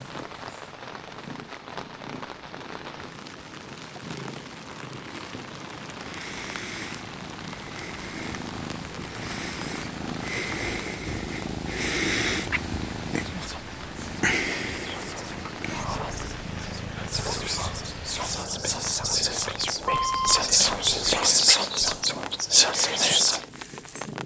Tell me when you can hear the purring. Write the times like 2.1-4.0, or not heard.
0.0-24.2.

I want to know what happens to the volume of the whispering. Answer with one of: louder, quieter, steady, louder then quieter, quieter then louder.
louder.